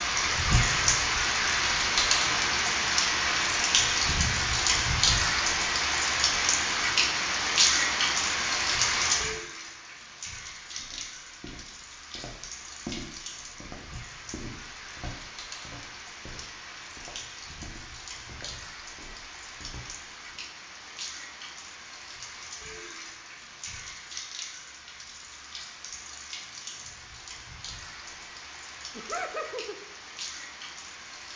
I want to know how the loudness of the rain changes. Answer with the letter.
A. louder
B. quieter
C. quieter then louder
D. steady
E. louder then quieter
B.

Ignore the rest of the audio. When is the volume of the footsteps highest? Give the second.
13 s.